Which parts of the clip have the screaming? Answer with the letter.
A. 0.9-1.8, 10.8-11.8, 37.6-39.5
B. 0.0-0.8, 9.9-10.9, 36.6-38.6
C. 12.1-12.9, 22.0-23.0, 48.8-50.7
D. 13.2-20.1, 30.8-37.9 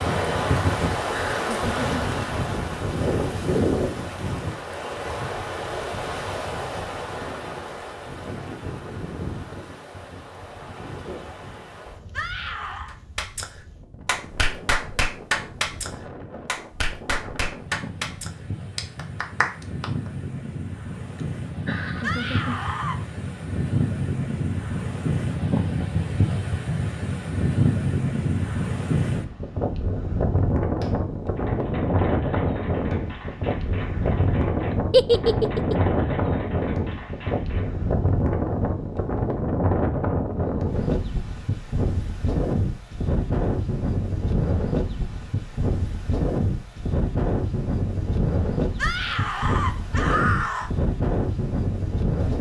C.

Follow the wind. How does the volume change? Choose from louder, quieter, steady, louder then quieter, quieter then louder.
quieter then louder.